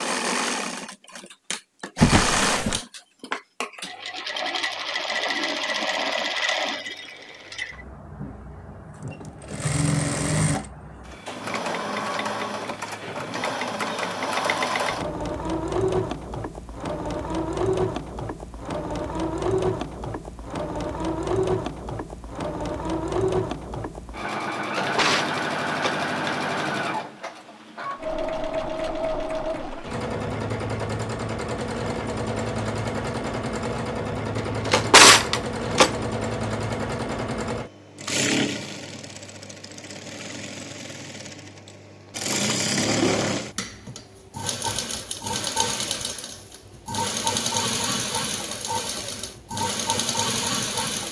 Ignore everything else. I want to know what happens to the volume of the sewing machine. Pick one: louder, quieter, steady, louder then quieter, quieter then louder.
steady.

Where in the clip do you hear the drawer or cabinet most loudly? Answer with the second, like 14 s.
35 s.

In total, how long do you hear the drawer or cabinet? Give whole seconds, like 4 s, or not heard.
4 s.